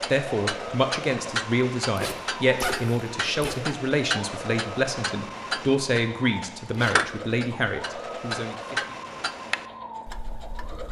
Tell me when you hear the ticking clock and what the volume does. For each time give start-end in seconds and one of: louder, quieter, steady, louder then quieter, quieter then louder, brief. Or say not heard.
0.0-10.8 steady.